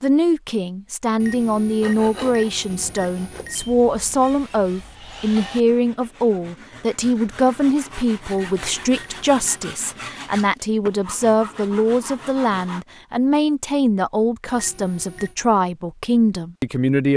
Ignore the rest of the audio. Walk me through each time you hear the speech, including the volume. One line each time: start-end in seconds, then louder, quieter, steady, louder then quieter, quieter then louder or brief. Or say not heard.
0.0-17.1 steady.